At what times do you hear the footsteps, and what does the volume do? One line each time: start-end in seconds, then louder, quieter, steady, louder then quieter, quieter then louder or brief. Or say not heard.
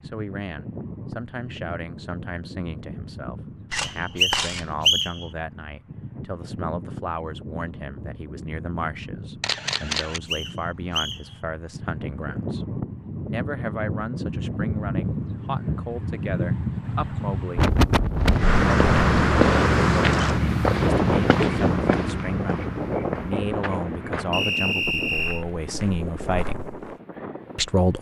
18.1-26.9 quieter.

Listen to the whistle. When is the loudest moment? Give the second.
5 s.